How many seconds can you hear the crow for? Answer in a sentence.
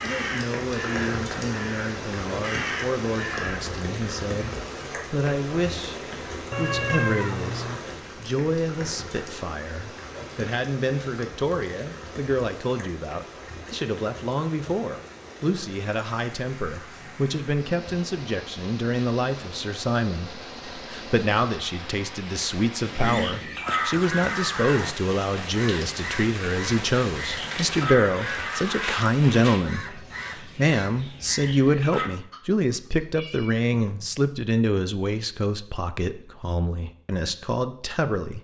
You can hear the crow for 13 seconds altogether.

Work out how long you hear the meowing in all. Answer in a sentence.
You can hear the meowing for 3 seconds altogether.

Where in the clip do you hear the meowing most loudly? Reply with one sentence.
The volume of the meowing peaks at 7 seconds.